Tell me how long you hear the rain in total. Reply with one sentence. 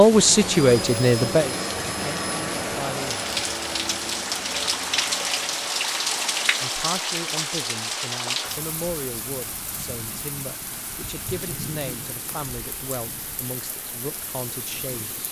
The rain can be heard for 15 seconds in total.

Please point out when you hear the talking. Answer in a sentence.
The talking can be heard from 0.0 to 3.2 s and from 6.6 to 15.2 s.